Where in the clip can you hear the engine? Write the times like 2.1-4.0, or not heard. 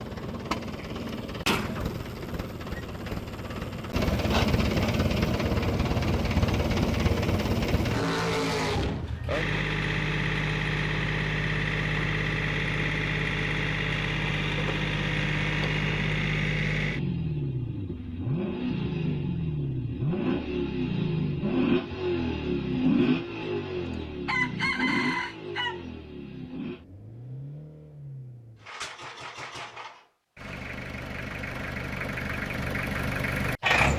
0.0-33.9.